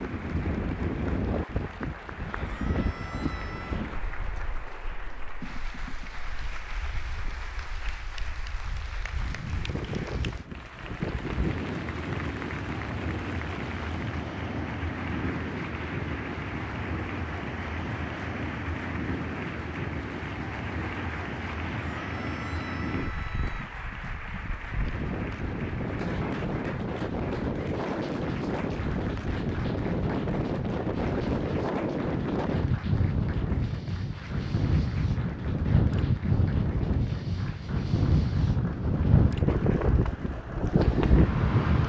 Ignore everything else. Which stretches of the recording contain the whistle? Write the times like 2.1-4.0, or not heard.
not heard.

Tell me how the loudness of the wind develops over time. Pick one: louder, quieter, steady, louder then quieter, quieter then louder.
louder.